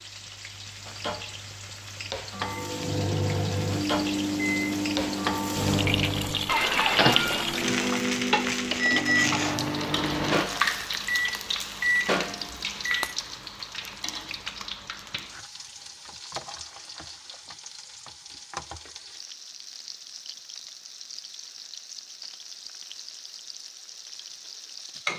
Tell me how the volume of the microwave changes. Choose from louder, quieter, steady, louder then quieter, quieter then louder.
steady.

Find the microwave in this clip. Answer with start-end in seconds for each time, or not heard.
2.4-13.1.